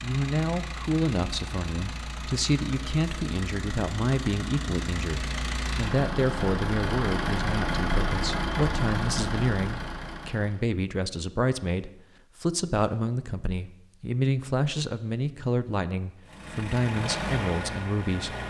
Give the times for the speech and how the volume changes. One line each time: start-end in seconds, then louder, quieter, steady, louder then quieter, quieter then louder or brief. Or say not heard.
0.0-18.4 steady.